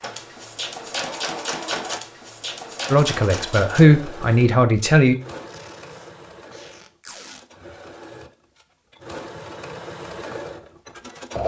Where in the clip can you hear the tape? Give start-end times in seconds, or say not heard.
5.5-7.4.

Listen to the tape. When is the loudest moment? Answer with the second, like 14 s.
7 s.